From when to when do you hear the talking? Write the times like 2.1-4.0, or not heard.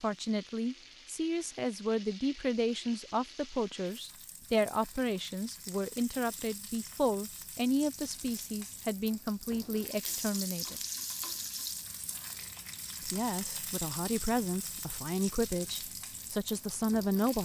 0.0-10.8, 13.0-17.4.